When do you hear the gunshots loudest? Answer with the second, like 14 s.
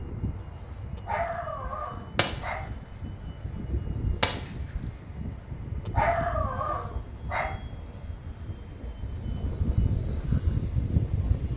4 s.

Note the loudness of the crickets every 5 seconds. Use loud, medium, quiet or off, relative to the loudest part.
quiet, medium, loud.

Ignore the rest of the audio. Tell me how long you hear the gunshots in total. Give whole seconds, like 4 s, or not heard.
4 s.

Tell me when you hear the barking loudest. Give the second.
6 s.